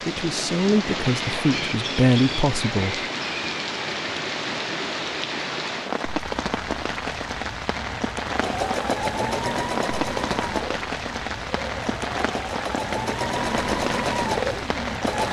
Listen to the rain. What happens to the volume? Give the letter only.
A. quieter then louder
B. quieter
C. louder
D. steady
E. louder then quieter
D.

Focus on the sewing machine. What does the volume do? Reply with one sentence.
The volume of the sewing machine goes down, then up.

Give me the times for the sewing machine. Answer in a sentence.
You can hear the sewing machine from 8.3 to 15.2 s.